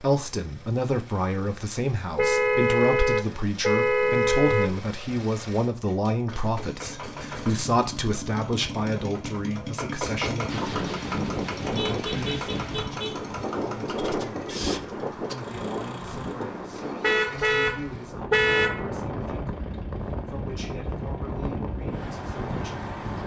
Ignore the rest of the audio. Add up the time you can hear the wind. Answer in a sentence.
The wind can be heard for 13 seconds in total.